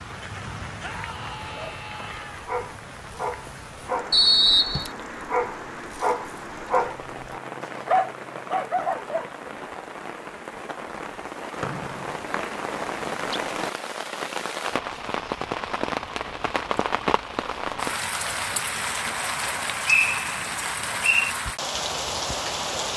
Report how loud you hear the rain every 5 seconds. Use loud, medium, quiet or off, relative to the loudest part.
medium, medium, loud, loud, loud.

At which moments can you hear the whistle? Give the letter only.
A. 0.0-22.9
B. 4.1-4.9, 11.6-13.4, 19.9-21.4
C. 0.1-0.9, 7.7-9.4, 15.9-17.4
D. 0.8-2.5
B.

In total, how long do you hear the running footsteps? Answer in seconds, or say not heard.
not heard.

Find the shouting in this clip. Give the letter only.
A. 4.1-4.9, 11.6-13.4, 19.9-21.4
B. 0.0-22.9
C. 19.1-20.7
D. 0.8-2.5
D.